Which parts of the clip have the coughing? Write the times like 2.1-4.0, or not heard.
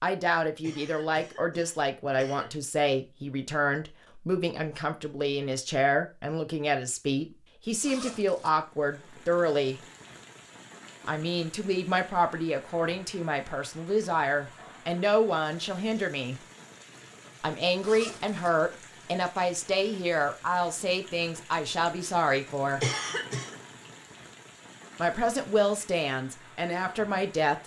0.6-2.5, 22.8-23.6.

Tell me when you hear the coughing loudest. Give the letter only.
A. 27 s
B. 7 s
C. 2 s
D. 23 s
D.